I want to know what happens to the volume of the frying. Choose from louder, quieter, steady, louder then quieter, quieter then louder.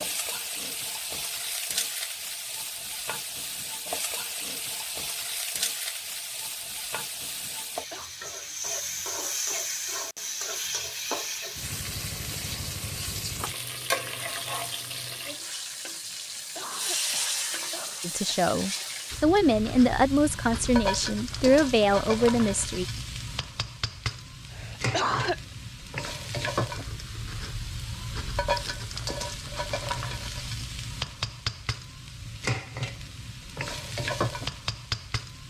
steady.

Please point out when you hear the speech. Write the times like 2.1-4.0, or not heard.
18.0-22.9.